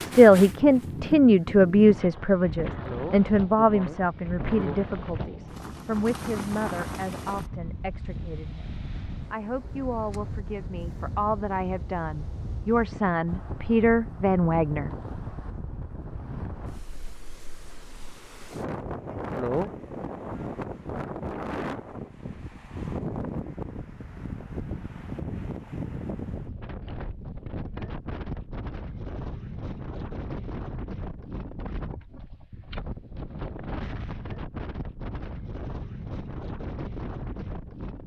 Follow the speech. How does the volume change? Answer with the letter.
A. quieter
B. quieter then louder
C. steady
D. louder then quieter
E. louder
B.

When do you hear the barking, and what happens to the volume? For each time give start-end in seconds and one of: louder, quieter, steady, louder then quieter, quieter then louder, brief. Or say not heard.
not heard.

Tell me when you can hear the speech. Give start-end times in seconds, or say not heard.
0.0-14.9.